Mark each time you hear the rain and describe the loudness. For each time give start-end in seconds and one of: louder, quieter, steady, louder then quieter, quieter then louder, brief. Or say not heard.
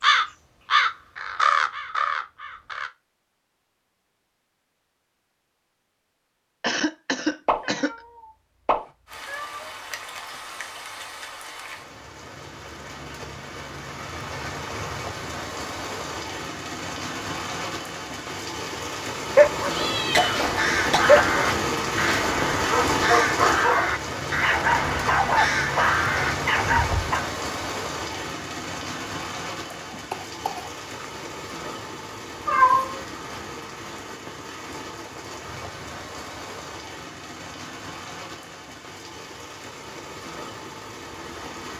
9.1-41.7 louder then quieter.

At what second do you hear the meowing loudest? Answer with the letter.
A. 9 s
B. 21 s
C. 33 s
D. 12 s
C.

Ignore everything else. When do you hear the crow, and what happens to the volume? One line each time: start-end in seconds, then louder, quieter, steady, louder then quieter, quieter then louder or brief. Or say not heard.
0.0-2.9 brief
20.4-27.1 steady.